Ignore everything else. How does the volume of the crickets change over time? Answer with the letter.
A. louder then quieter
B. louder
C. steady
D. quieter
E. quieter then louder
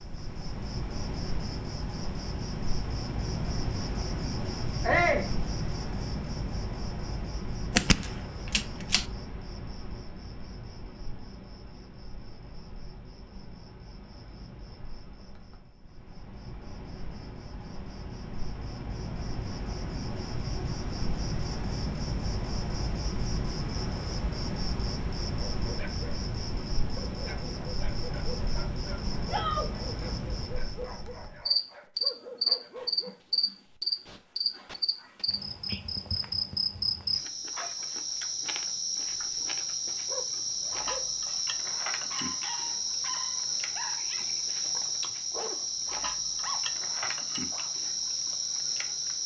E.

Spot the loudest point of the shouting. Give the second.
5 s.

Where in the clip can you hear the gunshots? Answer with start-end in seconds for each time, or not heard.
7.7-9.1.